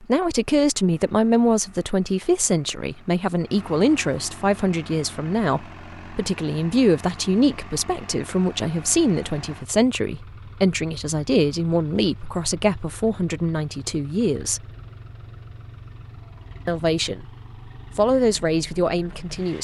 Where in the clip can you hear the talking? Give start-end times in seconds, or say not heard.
0.0-14.6, 16.6-17.2, 17.9-19.6.